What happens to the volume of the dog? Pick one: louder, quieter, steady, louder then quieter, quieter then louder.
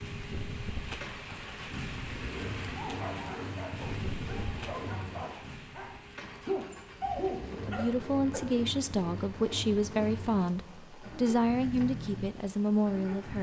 louder.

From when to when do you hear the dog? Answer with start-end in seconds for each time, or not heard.
2.8-8.6.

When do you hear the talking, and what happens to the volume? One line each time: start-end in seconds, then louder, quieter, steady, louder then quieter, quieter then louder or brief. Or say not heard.
7.5-13.3 steady.